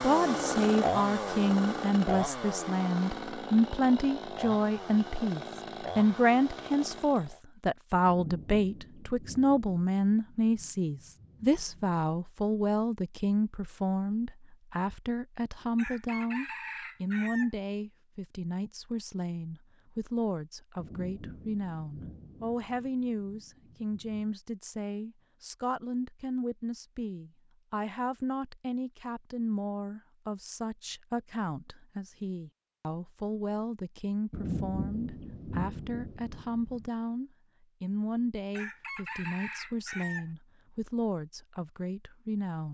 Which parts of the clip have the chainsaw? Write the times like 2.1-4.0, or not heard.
0.0-7.4.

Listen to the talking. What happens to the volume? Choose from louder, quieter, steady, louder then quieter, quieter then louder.
quieter.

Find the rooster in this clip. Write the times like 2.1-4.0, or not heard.
15.8-17.6, 38.5-40.3.